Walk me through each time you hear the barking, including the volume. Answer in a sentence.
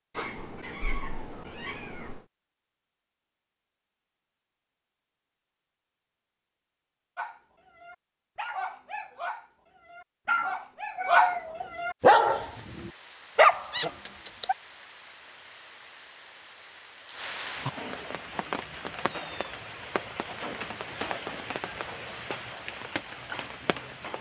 The barking can be heard from 7.2 to 14.6 s, getting louder.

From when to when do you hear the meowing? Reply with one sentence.
The meowing can be heard from 0.1 to 2.2 s, from 10.2 to 11.7 s and from 18.9 to 19.6 s.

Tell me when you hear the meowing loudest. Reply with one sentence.
The volume of the meowing peaks at 11 seconds.